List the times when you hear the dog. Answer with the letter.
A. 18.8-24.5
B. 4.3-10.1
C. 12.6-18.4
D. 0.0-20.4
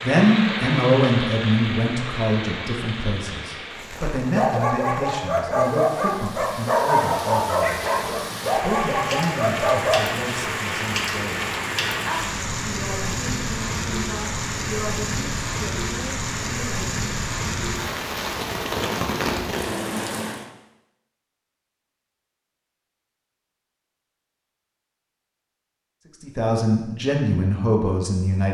B.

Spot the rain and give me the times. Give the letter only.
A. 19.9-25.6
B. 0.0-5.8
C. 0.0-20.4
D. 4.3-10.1
C.